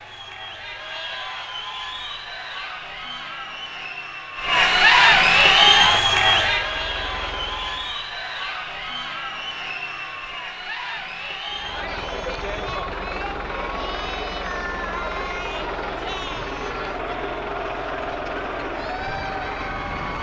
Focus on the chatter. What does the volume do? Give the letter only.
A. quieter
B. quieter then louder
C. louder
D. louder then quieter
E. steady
D.